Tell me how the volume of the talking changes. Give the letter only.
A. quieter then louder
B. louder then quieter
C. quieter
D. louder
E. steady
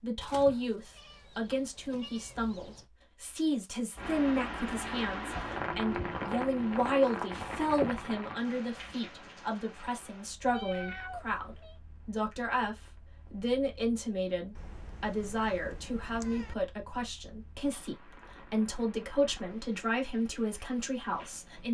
E.